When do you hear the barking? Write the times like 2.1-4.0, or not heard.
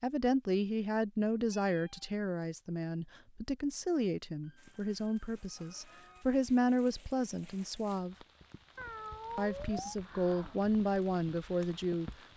not heard.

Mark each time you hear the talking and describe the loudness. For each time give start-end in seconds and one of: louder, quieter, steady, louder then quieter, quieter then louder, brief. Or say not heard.
0.0-8.2 quieter then louder
9.3-12.1 brief.